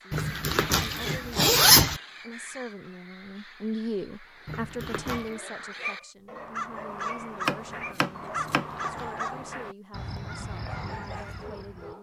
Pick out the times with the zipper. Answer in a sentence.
You can hear the zipper from 0.1 to 2.0 s, from 4.5 to 5.3 s and from 8.3 to 9.6 s.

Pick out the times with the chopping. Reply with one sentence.
You can hear the chopping from 7.5 to 8.8 s.